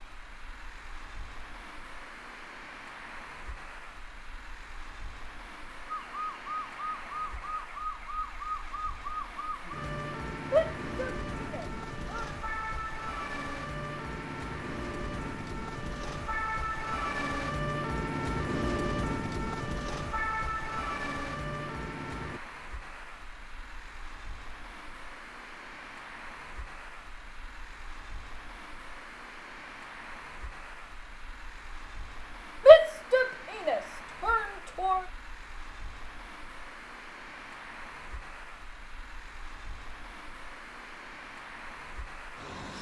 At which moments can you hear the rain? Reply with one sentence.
You can't hear the rain here.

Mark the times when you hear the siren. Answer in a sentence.
You can hear the siren from 5.8 to 22.4 s.